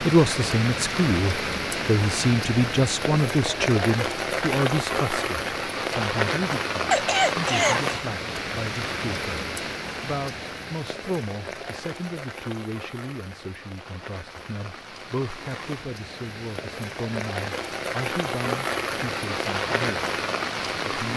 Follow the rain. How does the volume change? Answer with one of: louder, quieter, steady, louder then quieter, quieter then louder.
quieter then louder.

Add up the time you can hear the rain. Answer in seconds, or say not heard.
21 s.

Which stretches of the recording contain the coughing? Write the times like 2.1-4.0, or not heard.
6.9-8.1.